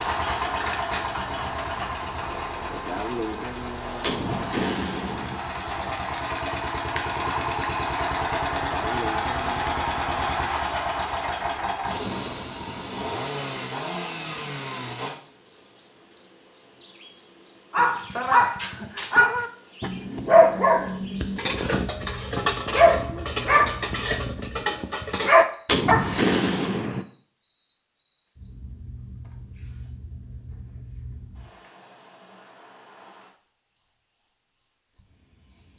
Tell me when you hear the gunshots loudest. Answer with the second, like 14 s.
26 s.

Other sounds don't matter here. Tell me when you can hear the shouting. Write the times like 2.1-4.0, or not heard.
not heard.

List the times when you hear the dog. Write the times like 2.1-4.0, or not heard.
17.7-26.2.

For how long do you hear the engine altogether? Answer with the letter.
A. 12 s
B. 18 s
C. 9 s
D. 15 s
D.